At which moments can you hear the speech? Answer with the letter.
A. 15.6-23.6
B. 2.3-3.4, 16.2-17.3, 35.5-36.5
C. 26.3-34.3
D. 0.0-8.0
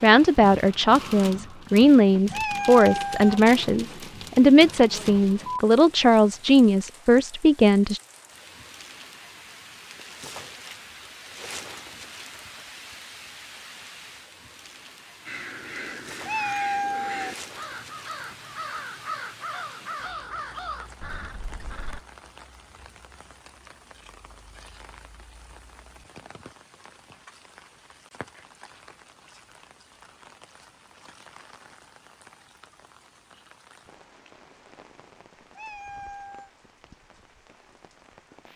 D.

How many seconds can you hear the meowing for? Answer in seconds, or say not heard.
3 s.